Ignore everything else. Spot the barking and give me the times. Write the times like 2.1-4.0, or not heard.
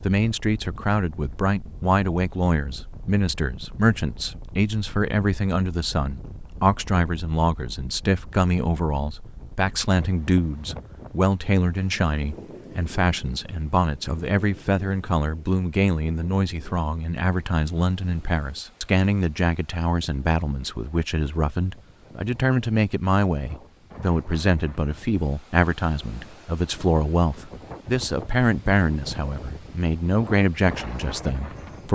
not heard.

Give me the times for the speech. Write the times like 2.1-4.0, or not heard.
0.0-31.9.